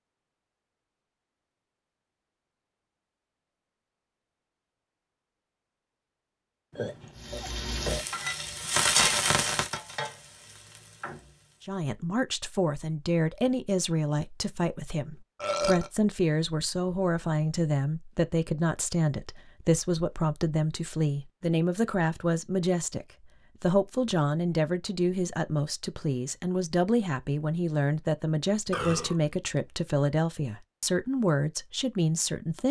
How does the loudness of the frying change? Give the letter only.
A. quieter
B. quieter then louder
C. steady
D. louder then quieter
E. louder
D.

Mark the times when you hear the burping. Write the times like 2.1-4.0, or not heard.
6.7-8.1, 15.4-15.9, 28.7-29.2.